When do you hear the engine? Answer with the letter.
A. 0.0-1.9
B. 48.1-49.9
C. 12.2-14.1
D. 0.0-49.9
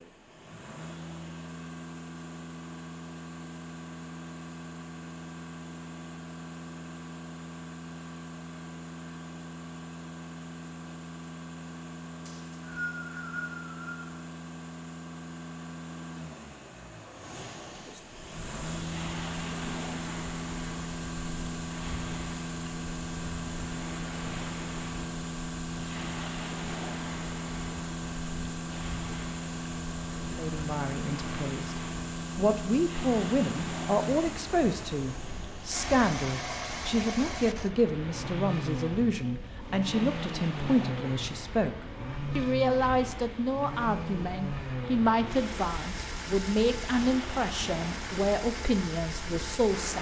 D.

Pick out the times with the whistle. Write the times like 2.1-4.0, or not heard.
12.2-14.1.